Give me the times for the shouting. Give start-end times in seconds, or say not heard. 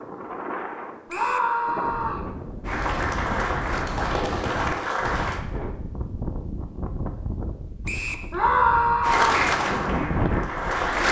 1.1-2.2, 8.3-9.5.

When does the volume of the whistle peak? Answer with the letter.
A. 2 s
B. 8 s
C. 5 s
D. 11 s
B.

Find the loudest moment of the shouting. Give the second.
9 s.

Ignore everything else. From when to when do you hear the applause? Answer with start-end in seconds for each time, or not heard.
2.6-5.4, 9.0-11.0.